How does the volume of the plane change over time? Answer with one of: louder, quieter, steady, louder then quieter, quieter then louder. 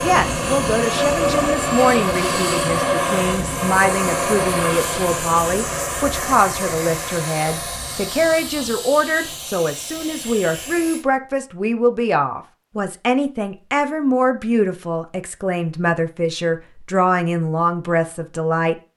quieter.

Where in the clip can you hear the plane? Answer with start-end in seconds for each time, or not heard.
0.0-11.1.